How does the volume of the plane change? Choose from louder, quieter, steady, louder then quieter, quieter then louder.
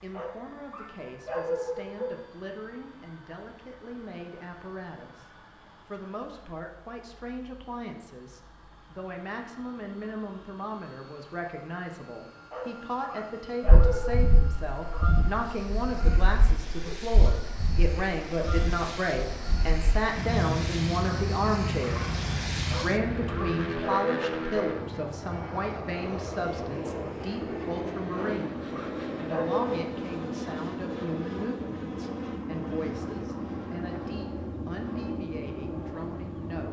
louder.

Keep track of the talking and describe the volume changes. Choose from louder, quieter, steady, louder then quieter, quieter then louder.
louder then quieter.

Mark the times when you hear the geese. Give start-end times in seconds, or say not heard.
13.7-23.6.